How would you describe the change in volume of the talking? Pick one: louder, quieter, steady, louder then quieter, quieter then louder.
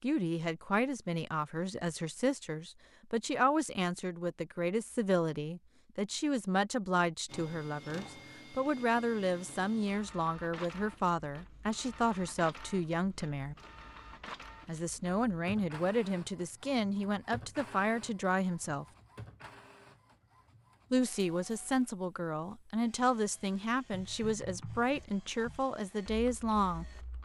steady.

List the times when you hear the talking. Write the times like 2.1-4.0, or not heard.
0.0-13.6, 14.7-18.9, 20.9-26.9.